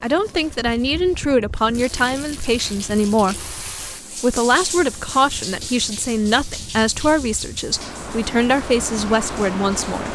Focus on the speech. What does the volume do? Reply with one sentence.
The volume of the speech stays about the same.